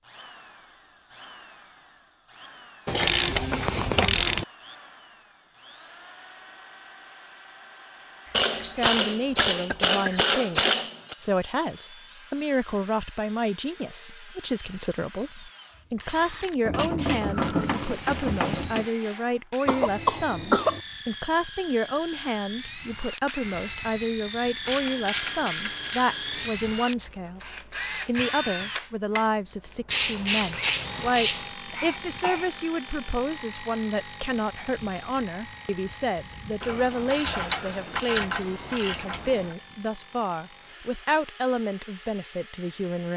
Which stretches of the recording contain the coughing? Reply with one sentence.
The coughing can be heard from 8.2 to 10.2 s, from 19.6 to 20.8 s and from 31.6 to 32.5 s.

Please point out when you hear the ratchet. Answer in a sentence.
You can hear the ratchet from 2.9 to 4.5 s, from 8.3 to 11.2 s, from 16.6 to 18.9 s, from 24.6 to 26.5 s, from 29.9 to 31.4 s and from 36.6 to 39.5 s.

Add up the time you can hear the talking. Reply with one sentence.
The talking can be heard for 34 seconds in total.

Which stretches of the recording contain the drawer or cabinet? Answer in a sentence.
The drawer or cabinet can't be heard in this clip.